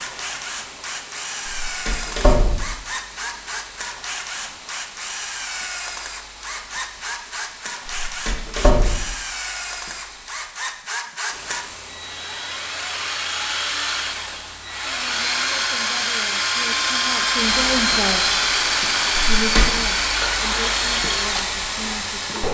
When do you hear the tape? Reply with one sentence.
The tape can't be heard in this clip.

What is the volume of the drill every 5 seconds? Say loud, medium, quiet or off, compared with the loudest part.
medium, medium, medium, loud, loud.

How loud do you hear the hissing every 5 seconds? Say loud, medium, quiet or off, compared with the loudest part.
quiet, quiet, quiet, loud, loud.